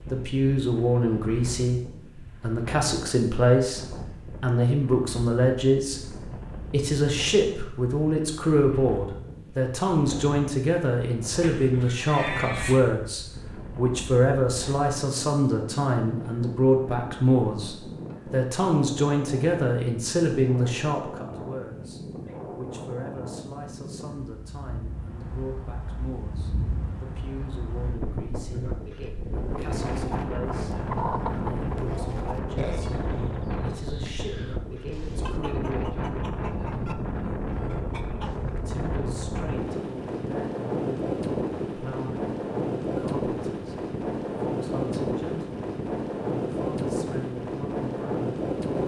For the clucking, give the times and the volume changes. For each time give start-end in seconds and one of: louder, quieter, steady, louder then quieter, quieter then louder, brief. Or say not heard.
29.4-38.5 quieter.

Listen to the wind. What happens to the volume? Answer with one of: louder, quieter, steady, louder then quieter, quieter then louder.
louder.